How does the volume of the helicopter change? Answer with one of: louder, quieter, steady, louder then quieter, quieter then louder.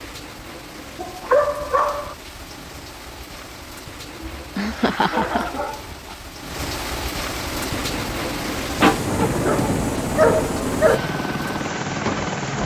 louder.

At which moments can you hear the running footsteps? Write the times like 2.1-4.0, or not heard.
not heard.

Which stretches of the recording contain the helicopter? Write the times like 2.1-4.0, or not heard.
7.5-12.6.